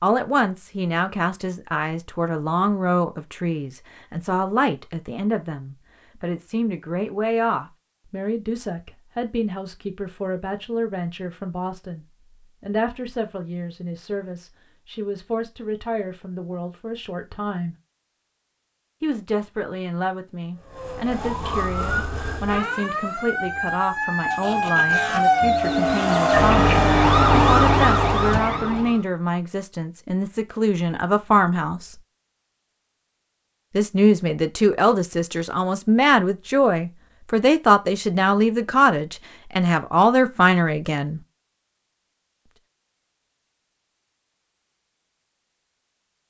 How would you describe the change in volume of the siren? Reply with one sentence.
The loudness of the siren goes up.